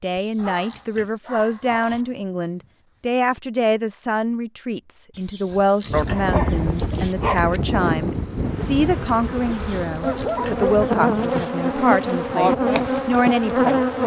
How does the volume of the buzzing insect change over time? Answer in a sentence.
The loudness of the buzzing insect goes up.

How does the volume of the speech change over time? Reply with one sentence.
The loudness of the speech stays about the same.